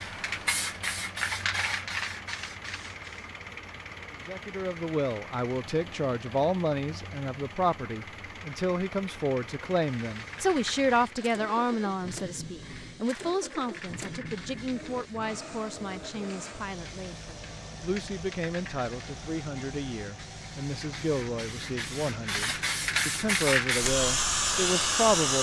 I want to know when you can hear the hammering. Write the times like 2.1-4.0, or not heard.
not heard.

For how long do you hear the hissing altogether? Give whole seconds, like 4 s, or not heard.
19 s.